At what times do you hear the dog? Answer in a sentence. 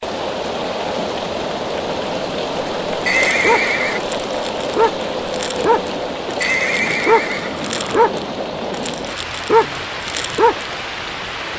The dog can be heard from 3.2 to 10.7 s.